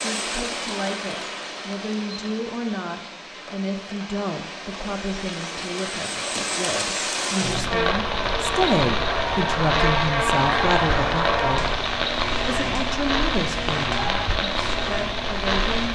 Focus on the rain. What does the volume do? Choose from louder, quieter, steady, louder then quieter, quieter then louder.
louder.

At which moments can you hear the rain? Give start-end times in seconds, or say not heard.
0.0-15.8.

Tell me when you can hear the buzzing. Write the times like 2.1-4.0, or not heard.
7.3-15.8.